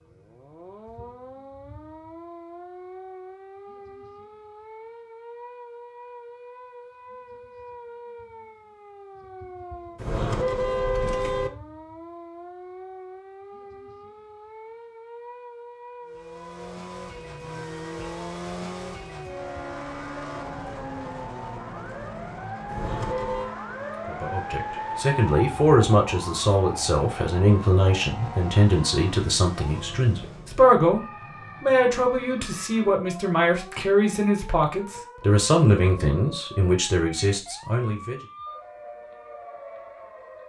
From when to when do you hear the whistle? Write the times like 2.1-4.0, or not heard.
not heard.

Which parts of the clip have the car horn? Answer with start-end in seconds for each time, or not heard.
9.9-11.5, 22.6-23.6.